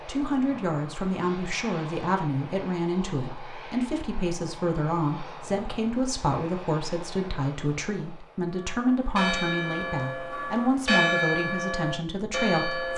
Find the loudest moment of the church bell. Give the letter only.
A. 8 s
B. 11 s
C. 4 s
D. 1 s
B.